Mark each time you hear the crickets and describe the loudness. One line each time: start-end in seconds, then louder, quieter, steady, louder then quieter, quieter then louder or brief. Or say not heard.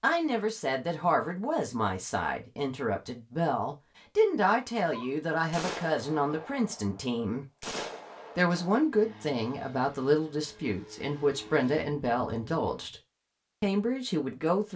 not heard.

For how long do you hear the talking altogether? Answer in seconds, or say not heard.
13 s.